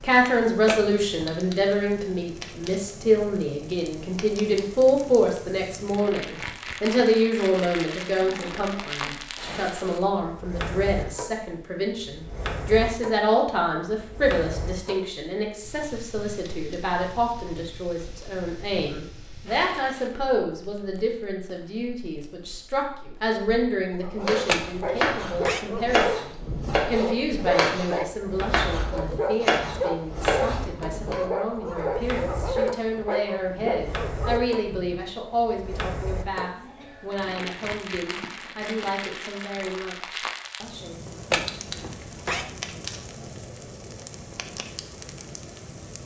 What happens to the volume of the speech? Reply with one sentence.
The loudness of the speech goes down.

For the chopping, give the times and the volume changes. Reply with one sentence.
The chopping can be heard from 24.2 to 31.1 s, at a steady volume.